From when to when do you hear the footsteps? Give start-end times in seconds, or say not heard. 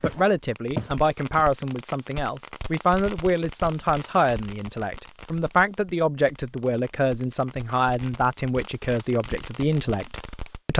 0.0-1.5.